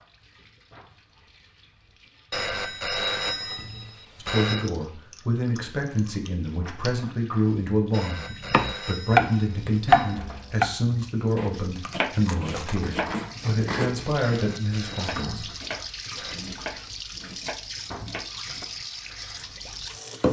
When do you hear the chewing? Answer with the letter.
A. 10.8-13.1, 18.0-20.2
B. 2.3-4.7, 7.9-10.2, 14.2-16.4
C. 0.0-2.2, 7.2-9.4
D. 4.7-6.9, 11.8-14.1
D.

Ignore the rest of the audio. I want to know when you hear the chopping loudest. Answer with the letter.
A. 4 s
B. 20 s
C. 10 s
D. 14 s
C.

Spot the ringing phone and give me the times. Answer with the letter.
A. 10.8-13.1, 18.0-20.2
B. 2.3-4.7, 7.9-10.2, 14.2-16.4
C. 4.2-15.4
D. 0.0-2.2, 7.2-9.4
B.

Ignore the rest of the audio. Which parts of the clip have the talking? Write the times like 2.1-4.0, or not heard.
4.2-15.4.